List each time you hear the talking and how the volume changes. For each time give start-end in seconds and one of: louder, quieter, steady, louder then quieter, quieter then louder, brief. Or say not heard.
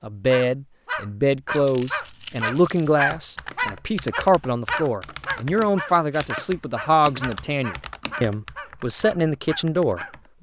0.0-10.3 steady.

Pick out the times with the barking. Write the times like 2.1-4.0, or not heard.
0.2-10.2.